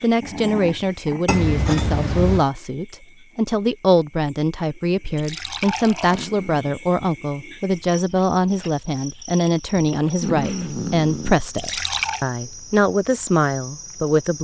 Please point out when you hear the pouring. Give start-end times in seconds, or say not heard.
1.2-2.5, 5.2-6.3, 11.6-12.2.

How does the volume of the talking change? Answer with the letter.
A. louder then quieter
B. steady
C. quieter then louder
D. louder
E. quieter
B.